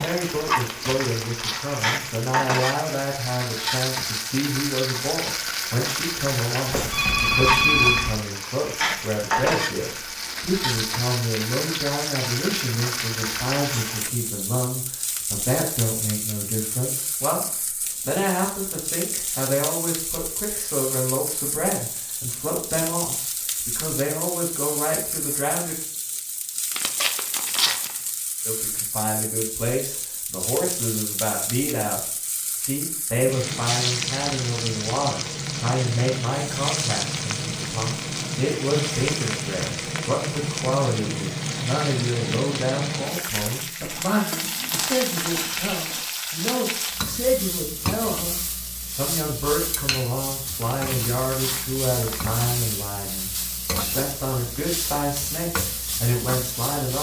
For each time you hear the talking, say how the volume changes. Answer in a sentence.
The talking can be heard from 0.0 to 25.8 s, at a steady volume; and from 28.4 to 56.9 s, at a steady volume.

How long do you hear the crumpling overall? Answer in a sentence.
The crumpling can be heard for 4 seconds in total.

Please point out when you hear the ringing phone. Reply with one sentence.
The ringing phone can be heard from 6.7 to 8.1 s.